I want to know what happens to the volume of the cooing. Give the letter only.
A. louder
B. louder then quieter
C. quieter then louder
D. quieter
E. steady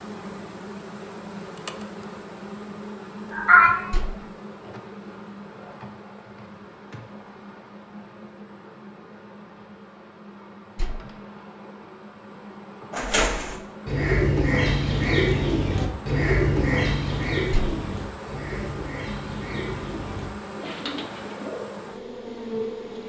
D.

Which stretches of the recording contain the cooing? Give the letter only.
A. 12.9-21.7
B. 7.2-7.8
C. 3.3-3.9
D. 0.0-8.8
A.